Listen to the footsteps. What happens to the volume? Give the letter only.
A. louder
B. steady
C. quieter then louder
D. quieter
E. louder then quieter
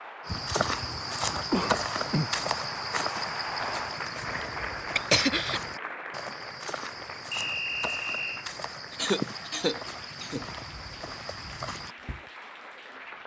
D.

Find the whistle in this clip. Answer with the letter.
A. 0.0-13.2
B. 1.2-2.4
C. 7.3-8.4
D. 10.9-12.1
C.